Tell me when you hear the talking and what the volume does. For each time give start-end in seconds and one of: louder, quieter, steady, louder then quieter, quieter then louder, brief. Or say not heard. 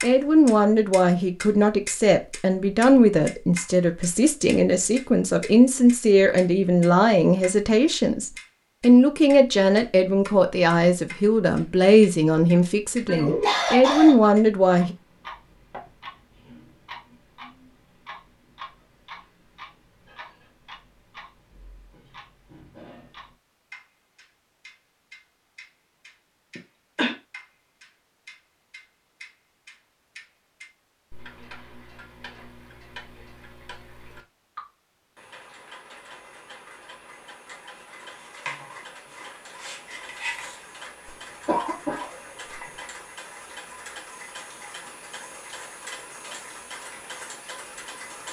0.0-14.9 steady.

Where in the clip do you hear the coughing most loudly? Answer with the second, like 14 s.
14 s.